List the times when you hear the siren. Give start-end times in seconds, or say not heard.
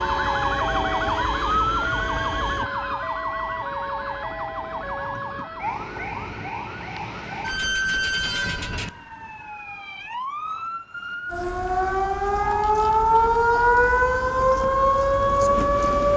0.0-16.1.